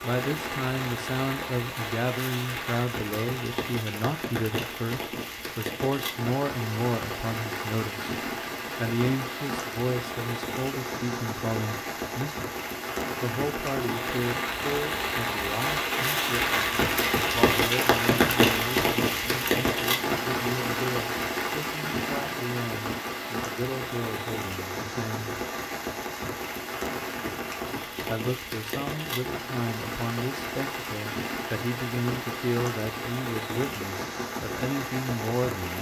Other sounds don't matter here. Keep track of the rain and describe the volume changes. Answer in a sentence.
The loudness of the rain goes up, then down.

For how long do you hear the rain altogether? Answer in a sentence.
The rain can be heard for 36 seconds in total.